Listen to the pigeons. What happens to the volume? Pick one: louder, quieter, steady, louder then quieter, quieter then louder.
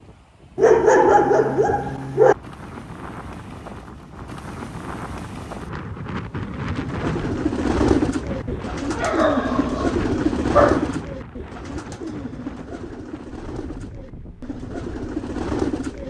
quieter then louder.